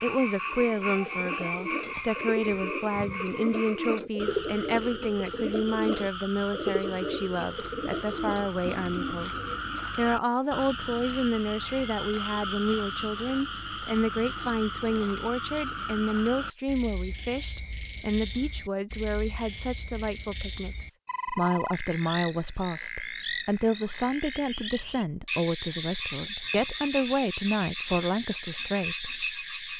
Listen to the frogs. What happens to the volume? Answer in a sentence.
The loudness of the frogs stays about the same.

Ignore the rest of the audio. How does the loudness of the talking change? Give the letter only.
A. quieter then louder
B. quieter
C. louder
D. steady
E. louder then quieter
D.